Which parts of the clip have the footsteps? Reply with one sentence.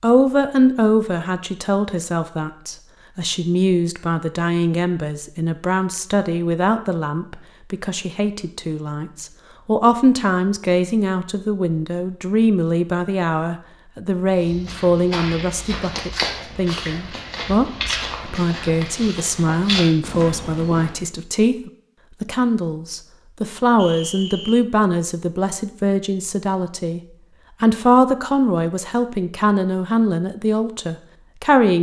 The footsteps can be heard from 14.4 to 21.0 s.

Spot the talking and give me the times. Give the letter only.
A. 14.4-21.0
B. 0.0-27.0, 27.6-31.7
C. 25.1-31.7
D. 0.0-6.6
B.